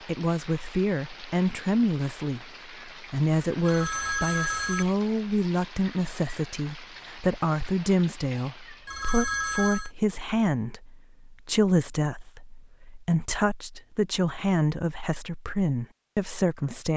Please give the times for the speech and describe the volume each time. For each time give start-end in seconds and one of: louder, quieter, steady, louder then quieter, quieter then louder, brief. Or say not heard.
0.1-16.9 steady.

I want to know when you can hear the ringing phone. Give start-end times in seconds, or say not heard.
3.6-5.0, 8.8-9.9.